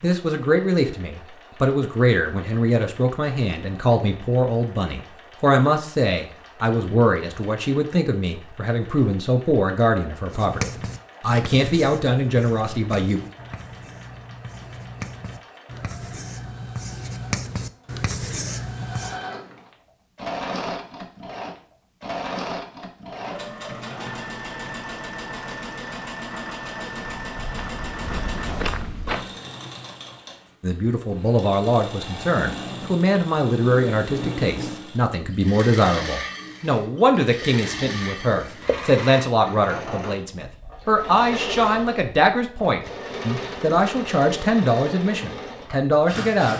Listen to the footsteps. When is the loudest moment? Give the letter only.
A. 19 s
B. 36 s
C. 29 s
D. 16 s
C.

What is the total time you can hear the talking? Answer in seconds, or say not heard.
29 s.